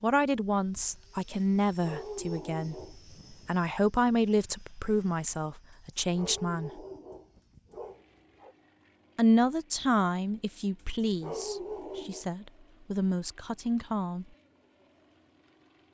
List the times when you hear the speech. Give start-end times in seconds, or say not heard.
0.0-6.8, 9.2-14.2.